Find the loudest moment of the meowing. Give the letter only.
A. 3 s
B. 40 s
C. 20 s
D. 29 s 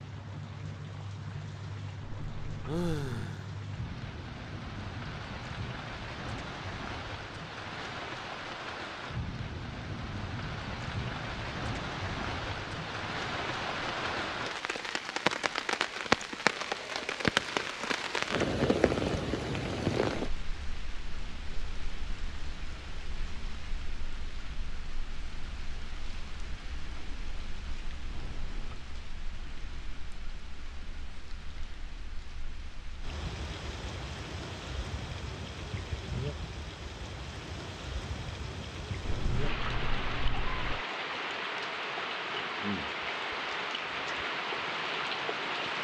B.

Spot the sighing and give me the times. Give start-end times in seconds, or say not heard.
2.6-3.5.